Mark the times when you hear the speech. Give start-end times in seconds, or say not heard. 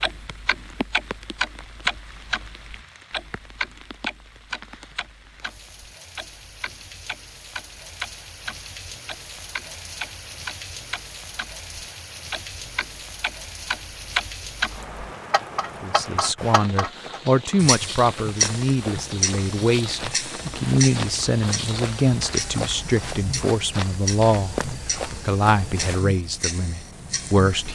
15.8-27.7.